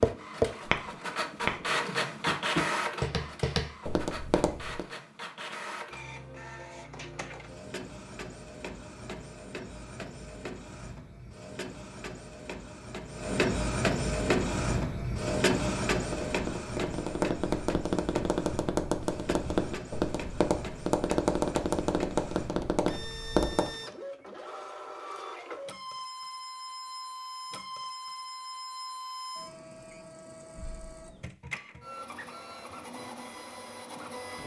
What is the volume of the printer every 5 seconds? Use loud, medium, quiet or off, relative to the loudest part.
loud, medium, loud, loud, medium, medium, medium.